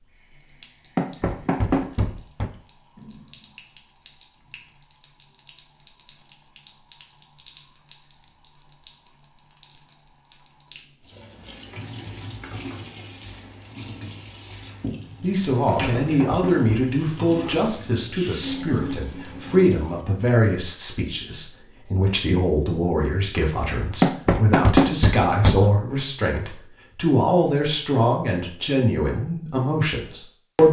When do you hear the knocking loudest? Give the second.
25 s.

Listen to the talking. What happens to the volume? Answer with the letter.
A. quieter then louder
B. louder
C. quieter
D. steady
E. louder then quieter
D.